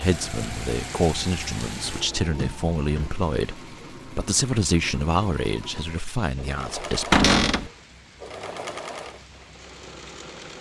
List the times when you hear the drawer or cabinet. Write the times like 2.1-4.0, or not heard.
1.8-3.1, 7.1-7.7.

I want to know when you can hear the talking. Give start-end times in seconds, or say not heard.
0.0-7.6.